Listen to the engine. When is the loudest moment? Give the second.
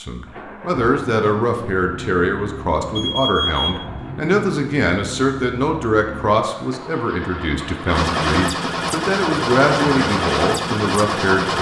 10 s.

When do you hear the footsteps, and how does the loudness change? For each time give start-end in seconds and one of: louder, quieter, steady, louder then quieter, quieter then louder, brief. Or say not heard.
not heard.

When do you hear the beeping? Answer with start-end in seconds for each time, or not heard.
3.0-3.9.